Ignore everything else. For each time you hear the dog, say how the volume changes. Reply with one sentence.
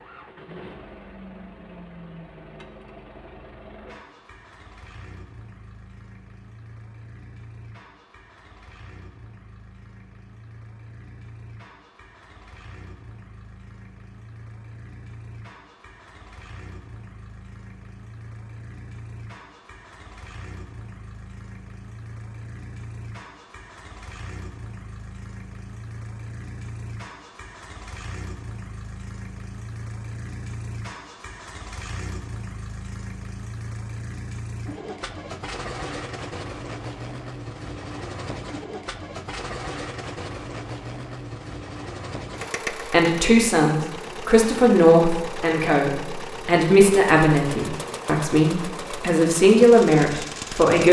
The dog can't be heard in this clip.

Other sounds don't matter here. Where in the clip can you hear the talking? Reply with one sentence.
You can hear the talking from 42.7 to 50.8 s.